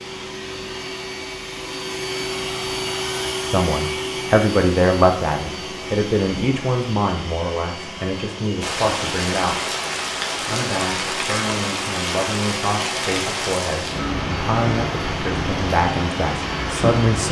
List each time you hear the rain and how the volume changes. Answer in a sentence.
The rain can be heard from 8.6 to 17.2 s, at a steady volume.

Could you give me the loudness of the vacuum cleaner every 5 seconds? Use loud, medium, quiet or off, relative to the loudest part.
loud, medium, medium, medium.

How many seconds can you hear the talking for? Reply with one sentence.
The talking can be heard for 13 seconds in total.